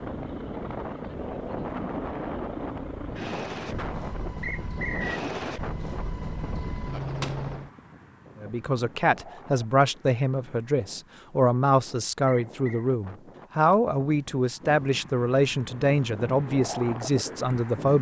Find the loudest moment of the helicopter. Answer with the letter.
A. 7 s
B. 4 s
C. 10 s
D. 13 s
A.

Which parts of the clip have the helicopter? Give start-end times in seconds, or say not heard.
0.0-7.7.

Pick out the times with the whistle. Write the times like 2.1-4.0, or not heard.
4.4-5.2, 12.2-12.8.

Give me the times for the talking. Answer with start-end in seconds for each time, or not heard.
8.4-17.9.